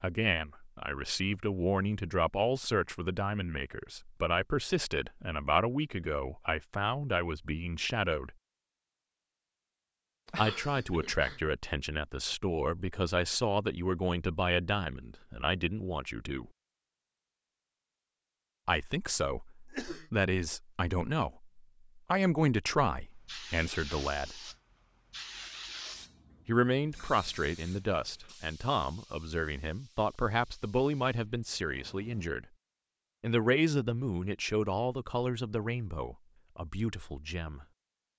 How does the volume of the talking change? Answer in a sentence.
The loudness of the talking stays about the same.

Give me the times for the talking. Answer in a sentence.
You can hear the talking from 0.0 to 8.3 s, from 10.3 to 16.5 s, from 18.6 to 24.5 s, from 26.4 to 32.5 s and from 33.2 to 37.6 s.